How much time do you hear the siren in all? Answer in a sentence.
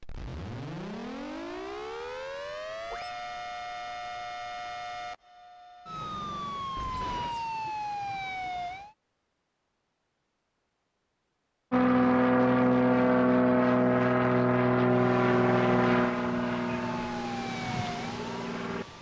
The siren can be heard for 13 seconds in total.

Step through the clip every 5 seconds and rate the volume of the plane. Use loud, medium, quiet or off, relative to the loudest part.
off, off, loud, medium.